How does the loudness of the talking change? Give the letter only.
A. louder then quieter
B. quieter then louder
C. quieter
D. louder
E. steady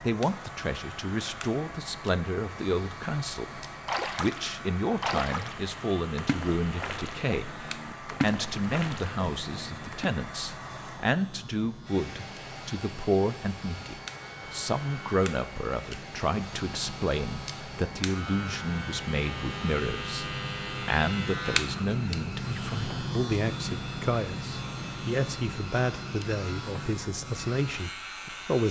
E.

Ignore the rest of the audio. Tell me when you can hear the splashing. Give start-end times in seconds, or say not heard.
3.6-10.1.